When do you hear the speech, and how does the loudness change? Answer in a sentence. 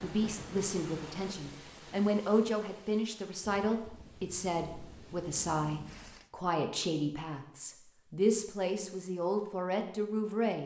You can hear the speech from 0.0 to 10.6 s, at a steady volume.